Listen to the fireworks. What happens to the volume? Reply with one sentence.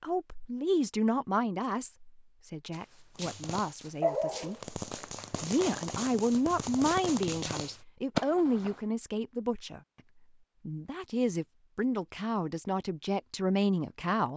The loudness of the fireworks goes down, then up.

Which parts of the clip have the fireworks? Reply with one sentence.
You can hear the fireworks from 3.1 to 8.8 s.